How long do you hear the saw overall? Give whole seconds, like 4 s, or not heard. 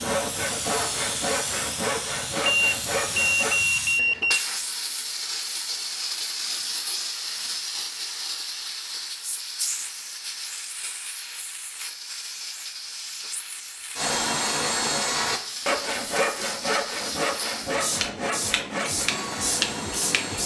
10 s.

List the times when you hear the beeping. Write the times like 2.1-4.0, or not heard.
2.5-4.4.